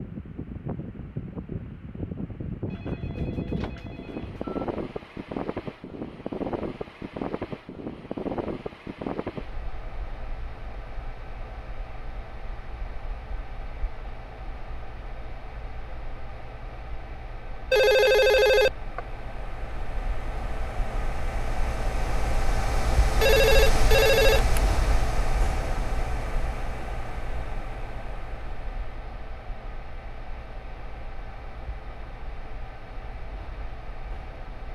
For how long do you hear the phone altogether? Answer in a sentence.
The phone can be heard for 5 seconds in total.